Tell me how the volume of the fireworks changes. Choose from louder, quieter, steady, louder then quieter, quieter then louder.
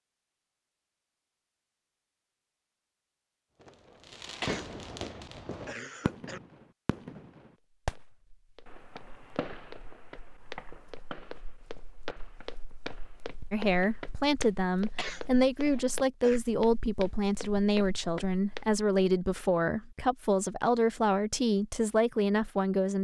quieter.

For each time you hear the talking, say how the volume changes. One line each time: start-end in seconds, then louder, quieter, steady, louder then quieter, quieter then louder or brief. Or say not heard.
13.5-22.9 steady.